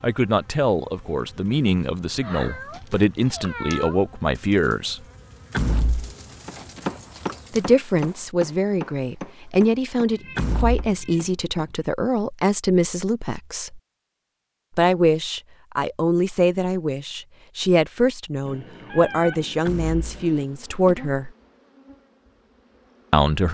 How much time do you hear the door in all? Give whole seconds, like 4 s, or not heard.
2 s.